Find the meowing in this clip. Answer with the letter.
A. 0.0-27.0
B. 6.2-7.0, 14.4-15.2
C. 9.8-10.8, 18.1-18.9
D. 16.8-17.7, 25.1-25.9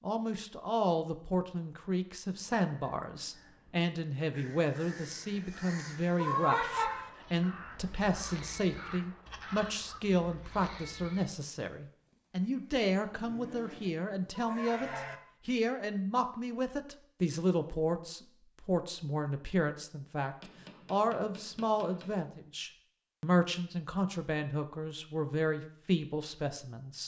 B.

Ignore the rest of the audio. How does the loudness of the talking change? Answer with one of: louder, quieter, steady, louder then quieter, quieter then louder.
steady.